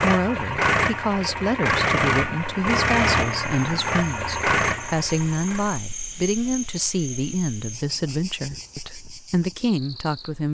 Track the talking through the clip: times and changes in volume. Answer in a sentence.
The talking can be heard from 0.0 to 10.4 s, at a steady volume.